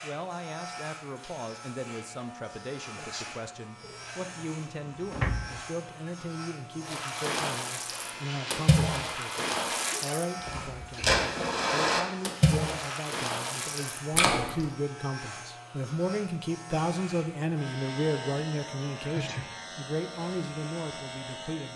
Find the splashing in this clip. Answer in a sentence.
You can hear the splashing from 6.8 to 14.7 s.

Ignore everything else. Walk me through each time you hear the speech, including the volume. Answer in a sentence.
The speech can be heard from 0.0 to 21.7 s, getting louder.